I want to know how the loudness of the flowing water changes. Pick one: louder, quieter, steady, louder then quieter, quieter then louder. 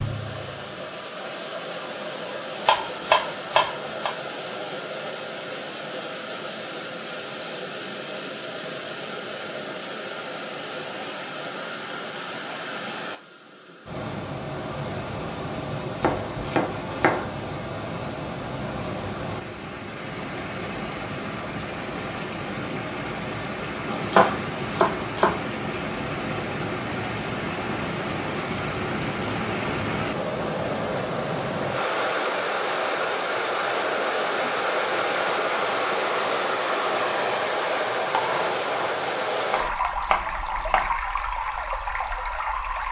louder.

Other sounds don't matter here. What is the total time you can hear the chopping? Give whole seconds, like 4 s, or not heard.
7 s.